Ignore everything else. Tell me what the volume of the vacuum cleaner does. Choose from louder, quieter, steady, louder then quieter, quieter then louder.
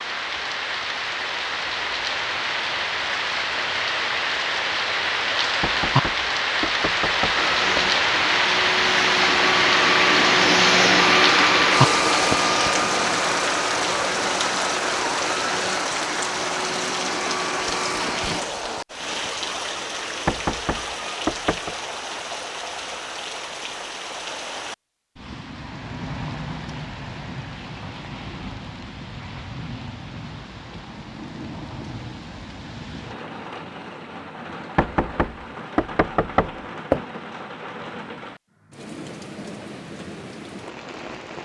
louder then quieter.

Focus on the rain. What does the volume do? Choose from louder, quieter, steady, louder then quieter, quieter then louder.
quieter.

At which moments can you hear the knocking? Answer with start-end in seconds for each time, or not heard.
5.6-7.9, 20.2-21.8, 34.8-37.0.